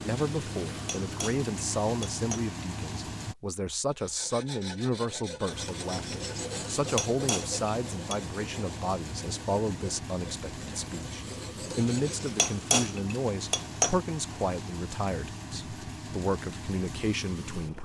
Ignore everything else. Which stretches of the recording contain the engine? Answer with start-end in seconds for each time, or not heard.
0.0-3.4, 5.5-17.8.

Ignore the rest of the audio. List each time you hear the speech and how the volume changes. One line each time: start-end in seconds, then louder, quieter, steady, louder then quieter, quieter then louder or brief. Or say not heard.
0.0-17.8 steady.